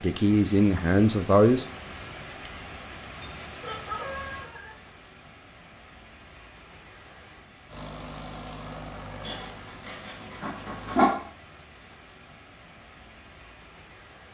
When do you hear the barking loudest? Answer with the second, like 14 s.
11 s.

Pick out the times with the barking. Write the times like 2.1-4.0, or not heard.
3.2-5.0, 9.2-11.2.